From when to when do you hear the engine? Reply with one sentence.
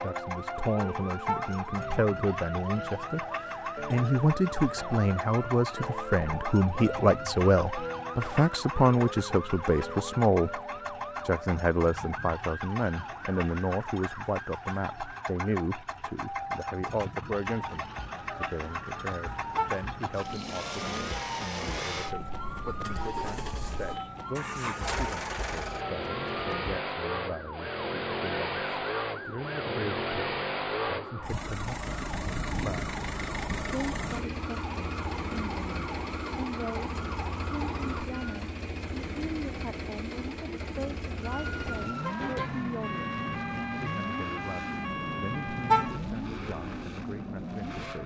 The engine can be heard from 0.0 to 48.0 s.